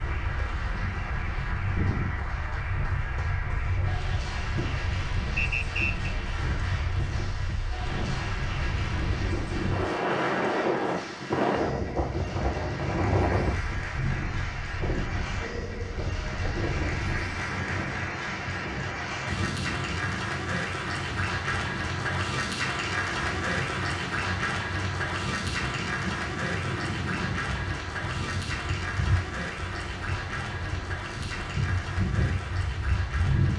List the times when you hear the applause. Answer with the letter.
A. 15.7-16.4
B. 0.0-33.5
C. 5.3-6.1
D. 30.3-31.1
B.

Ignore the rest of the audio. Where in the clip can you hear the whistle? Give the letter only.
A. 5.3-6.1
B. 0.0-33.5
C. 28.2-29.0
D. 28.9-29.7
A.